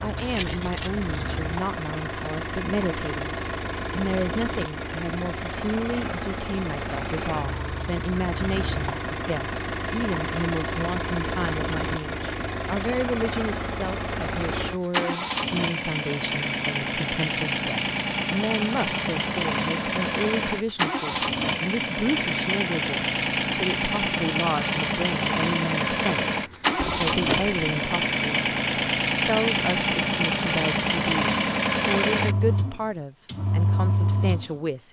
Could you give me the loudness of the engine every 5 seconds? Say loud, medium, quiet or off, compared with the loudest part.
medium, medium, medium, loud, loud, loud, loud.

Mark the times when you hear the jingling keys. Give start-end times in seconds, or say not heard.
0.1-1.4, 26.8-27.6.